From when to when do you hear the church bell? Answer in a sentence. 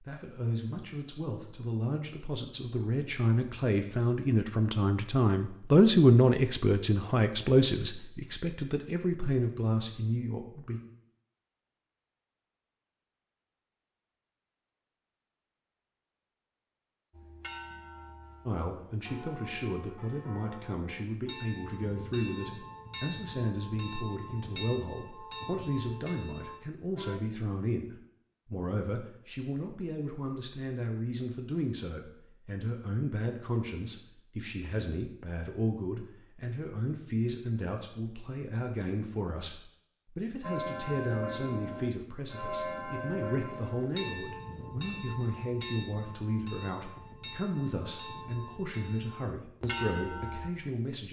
The church bell can be heard from 17.1 to 27.2 s and from 40.4 to 50.5 s.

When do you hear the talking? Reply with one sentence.
You can hear the talking from 0.0 to 10.8 s and from 18.4 to 51.0 s.